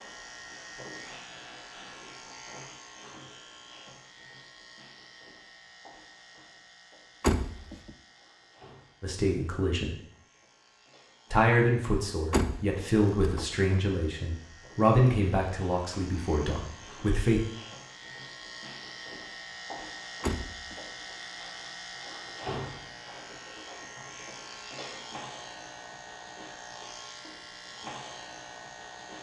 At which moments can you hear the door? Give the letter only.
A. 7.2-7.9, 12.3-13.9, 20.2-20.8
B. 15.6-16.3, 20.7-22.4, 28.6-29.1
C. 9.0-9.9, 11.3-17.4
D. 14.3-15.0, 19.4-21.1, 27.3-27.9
A.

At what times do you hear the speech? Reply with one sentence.
The speech can be heard from 9.0 to 9.9 s and from 11.3 to 17.4 s.